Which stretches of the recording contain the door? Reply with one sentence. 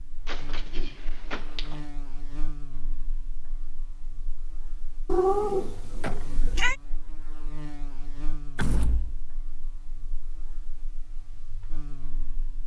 The door can be heard from 0.2 to 1.8 s, from 6.0 to 6.7 s and from 8.6 to 9.2 s.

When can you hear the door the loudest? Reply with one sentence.
The volume of the door peaks at 9 seconds.